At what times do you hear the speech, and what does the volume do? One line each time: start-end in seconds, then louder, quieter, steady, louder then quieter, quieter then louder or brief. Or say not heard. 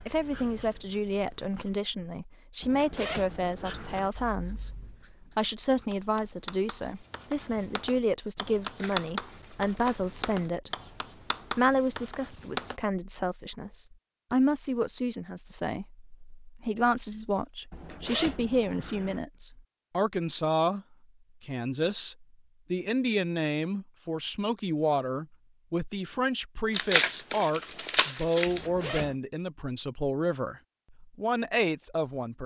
0.1-10.7 steady
11.5-32.4 steady.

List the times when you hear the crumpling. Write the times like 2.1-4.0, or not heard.
8.6-10.6, 26.7-28.6.